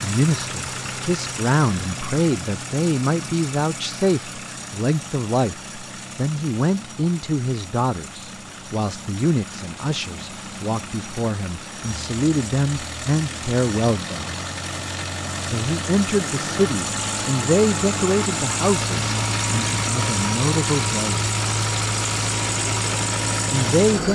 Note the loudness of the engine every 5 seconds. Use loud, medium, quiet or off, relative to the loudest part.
medium, quiet, medium, loud, loud.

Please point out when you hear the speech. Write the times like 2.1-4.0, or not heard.
0.0-14.3, 15.4-21.3, 23.5-24.1.